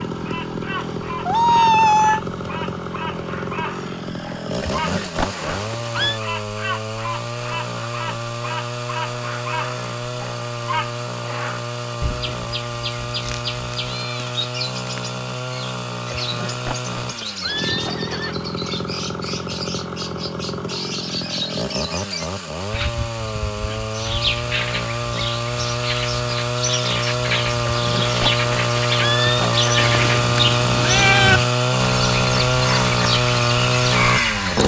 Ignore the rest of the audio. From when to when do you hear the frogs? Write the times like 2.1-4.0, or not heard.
not heard.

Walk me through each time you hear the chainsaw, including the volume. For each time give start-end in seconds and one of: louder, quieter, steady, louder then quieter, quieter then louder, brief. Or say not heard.
0.0-34.6 louder.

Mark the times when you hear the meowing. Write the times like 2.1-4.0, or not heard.
0.8-2.2, 13.2-15.0, 29.8-31.4.